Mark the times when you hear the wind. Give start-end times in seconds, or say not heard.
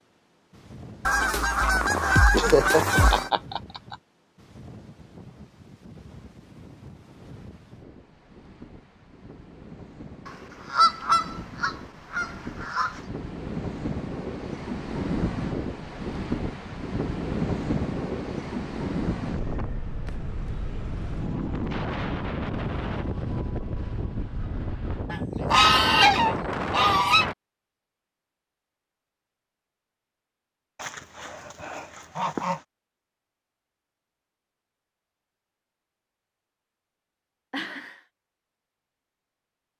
0.0-27.4.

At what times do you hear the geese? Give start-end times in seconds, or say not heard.
1.1-3.3, 10.2-13.0, 25.1-27.3, 30.8-32.6.